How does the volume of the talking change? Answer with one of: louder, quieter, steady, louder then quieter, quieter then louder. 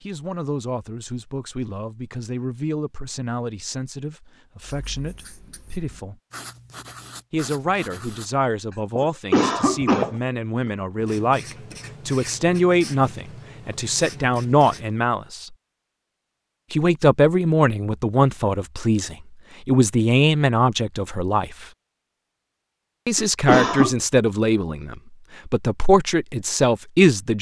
louder.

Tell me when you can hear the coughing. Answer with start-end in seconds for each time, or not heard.
9.0-10.2, 23.1-23.9.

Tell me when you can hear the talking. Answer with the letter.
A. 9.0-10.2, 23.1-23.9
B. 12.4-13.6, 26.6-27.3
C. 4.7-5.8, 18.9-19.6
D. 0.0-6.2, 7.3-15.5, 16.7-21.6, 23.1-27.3
D.